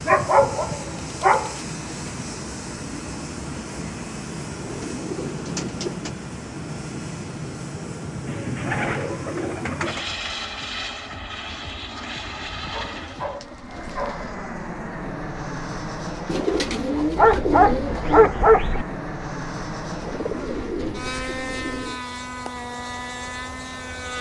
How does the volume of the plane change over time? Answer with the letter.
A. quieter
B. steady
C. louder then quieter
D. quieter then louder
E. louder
B.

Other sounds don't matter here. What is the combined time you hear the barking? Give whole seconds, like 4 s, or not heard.
5 s.